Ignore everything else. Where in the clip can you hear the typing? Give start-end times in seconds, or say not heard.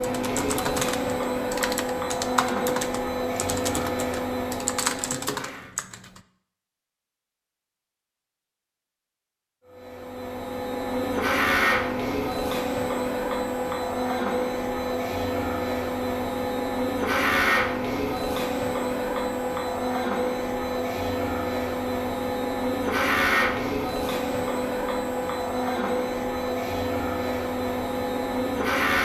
0.0-6.2.